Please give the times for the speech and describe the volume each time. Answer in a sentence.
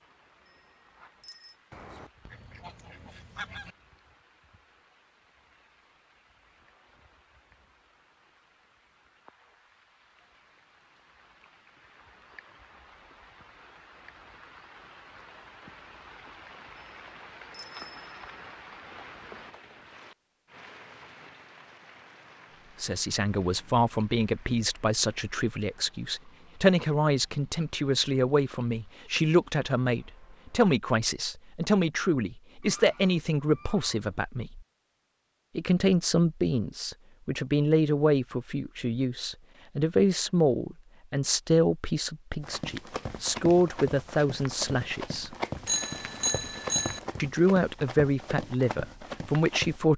You can hear the speech from 22.8 to 34.6 s, at a steady volume; from 35.5 to 45.4 s, at a steady volume; and briefly from 47.2 to 49.9 s.